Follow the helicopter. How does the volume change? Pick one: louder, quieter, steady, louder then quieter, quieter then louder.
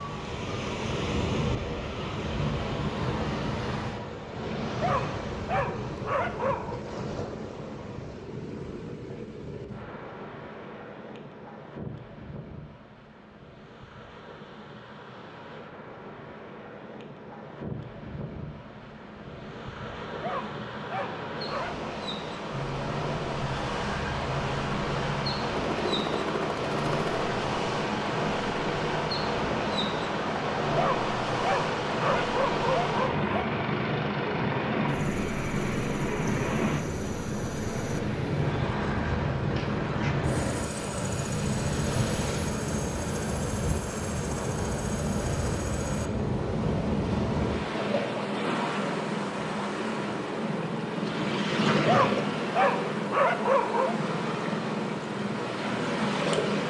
steady.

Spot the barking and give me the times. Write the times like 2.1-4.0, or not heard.
4.8-6.8, 20.2-21.9, 30.8-33.5, 51.9-54.0.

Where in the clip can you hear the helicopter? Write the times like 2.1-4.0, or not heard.
22.5-56.6.